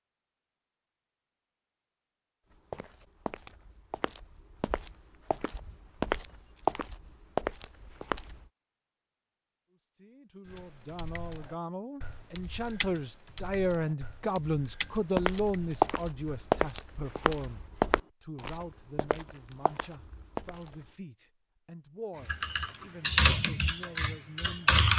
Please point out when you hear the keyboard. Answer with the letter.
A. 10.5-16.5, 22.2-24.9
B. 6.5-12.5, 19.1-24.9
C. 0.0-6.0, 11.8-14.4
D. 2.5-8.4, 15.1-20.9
A.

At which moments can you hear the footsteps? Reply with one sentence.
You can hear the footsteps from 2.5 to 8.4 s and from 15.1 to 20.9 s.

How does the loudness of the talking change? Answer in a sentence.
The volume of the talking goes up, then down.